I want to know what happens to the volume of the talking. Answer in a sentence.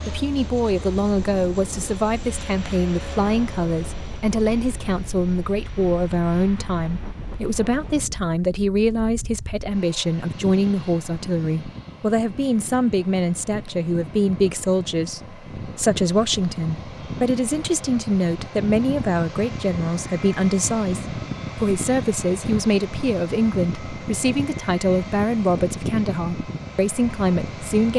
The volume of the talking stays about the same.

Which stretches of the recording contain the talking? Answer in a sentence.
The talking can be heard from 0.1 to 27.9 s.